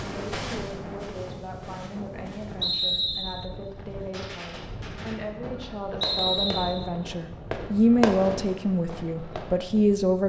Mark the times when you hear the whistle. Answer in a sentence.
The whistle can be heard from 2.6 to 3.5 s and from 6.0 to 6.8 s.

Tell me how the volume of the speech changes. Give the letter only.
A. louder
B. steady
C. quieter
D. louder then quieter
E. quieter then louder
A.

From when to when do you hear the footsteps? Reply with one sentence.
You can hear the footsteps from 0.0 to 2.8 s.